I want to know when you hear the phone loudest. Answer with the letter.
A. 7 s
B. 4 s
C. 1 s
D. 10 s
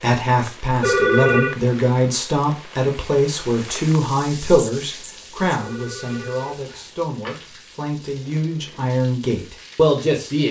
C.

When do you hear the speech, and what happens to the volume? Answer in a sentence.
The speech can be heard from 0.0 to 10.4 s, getting quieter then louder.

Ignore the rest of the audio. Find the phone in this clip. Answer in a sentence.
You can hear the phone from 0.8 to 1.6 s and from 5.6 to 7.3 s.